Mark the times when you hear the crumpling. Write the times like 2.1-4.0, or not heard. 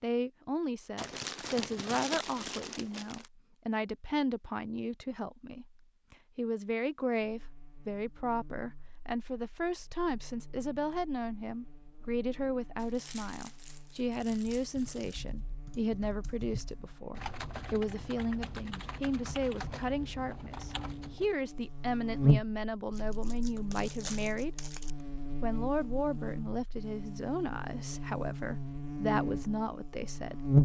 0.9-3.2, 12.8-15.2, 22.9-24.9.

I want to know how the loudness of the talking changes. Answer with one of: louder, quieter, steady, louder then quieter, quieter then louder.
steady.